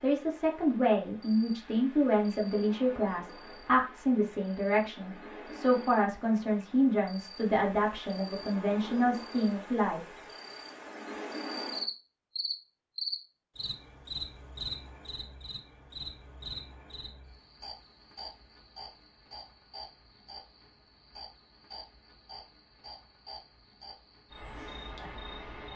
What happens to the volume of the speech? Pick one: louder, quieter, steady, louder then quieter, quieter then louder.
steady.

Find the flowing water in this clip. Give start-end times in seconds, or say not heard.
not heard.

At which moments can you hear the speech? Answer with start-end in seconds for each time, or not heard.
0.0-10.0.